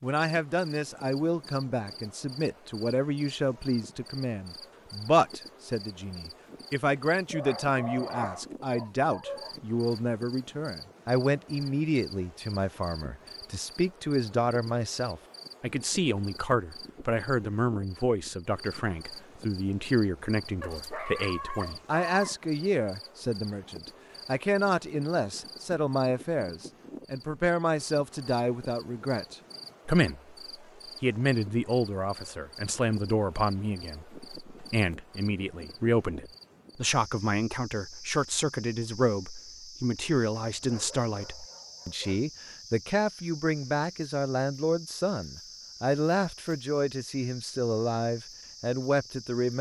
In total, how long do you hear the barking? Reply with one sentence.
You can hear the barking for 6 seconds altogether.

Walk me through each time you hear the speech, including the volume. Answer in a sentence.
The speech can be heard from 0.0 to 30.4 s, at a steady volume; and from 31.0 to 49.5 s, at a steady volume.